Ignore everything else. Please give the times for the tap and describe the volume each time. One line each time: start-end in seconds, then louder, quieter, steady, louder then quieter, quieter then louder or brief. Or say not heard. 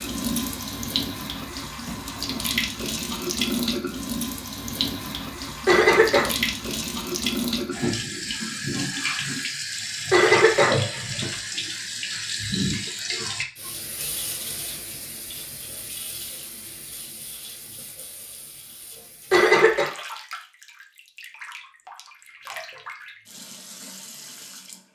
0.0-24.9 quieter.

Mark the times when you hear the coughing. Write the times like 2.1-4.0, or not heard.
5.7-6.3, 10.1-11.3, 19.3-19.9.